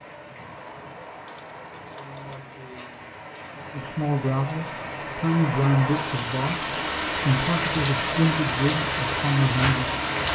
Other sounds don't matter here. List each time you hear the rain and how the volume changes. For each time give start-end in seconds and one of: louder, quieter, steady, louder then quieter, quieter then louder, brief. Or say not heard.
0.0-10.2 louder.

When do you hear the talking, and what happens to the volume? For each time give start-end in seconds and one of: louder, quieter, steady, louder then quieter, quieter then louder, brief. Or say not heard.
3.7-9.9 steady.